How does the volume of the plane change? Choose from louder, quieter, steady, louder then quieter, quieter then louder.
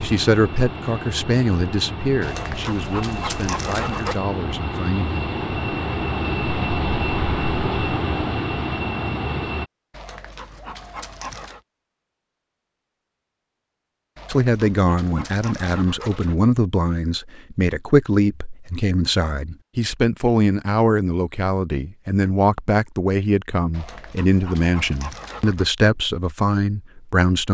louder.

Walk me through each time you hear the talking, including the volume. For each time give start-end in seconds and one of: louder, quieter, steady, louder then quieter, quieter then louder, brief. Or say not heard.
0.0-5.2 quieter
14.2-27.4 steady.